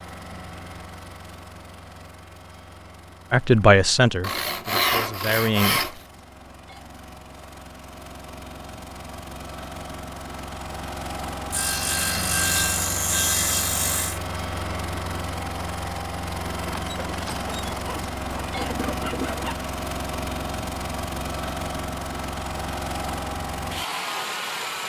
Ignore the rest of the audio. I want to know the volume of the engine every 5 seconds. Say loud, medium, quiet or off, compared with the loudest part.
quiet, medium, loud, loud, loud.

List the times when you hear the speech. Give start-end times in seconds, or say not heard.
3.3-5.8.